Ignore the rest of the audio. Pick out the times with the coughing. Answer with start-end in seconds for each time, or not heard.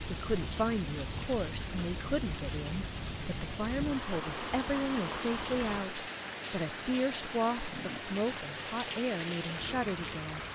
not heard.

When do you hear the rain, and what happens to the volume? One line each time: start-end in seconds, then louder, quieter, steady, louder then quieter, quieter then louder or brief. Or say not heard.
0.0-10.5 steady.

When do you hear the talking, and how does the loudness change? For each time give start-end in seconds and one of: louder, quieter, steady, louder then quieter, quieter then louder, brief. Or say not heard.
0.1-10.4 steady.